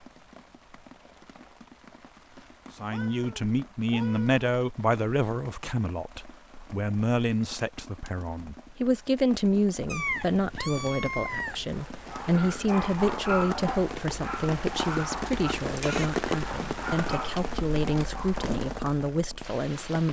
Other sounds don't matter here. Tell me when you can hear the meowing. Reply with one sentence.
You can hear the meowing from 2.9 to 4.5 s, from 9.8 to 11.7 s and from 15.7 to 16.2 s.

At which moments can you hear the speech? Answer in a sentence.
The speech can be heard from 2.8 to 20.0 s.